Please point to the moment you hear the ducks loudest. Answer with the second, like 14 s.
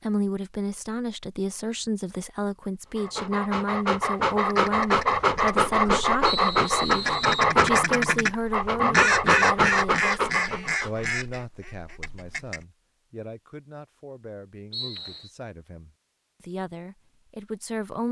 9 s.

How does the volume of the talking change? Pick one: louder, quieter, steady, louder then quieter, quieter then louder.
quieter.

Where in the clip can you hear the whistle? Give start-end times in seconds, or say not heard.
6.2-7.5, 14.7-15.3.